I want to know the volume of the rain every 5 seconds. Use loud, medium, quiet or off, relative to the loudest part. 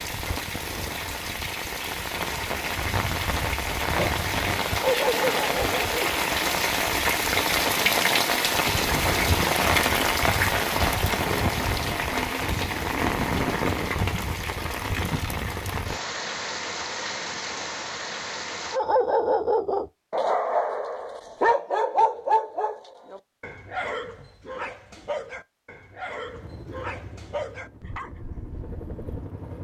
medium, loud, loud, medium, off, off.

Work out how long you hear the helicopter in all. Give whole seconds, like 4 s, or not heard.
3 s.